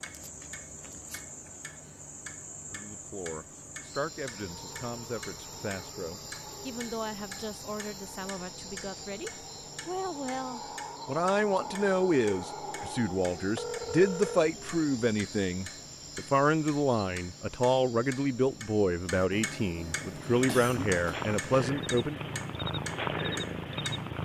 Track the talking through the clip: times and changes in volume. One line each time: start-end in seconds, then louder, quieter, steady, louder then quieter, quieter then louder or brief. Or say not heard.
2.7-22.2 louder.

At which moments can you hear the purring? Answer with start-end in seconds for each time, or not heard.
19.9-24.2.